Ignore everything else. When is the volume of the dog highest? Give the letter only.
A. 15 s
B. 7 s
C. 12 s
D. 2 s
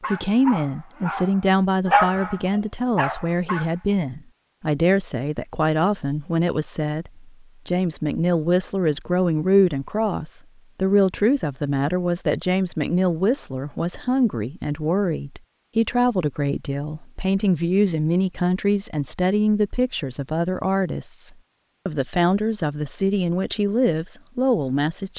D.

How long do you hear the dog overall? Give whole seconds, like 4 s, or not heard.
4 s.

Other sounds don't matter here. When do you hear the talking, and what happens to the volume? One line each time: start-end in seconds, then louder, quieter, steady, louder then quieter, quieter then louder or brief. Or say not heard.
0.1-25.1 steady.